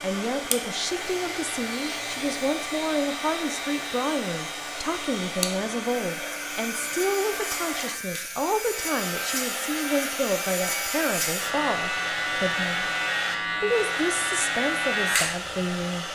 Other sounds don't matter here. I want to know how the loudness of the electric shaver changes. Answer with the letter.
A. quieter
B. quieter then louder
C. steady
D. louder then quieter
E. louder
E.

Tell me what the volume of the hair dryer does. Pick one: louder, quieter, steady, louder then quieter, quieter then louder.
steady.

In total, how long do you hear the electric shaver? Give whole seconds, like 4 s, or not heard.
16 s.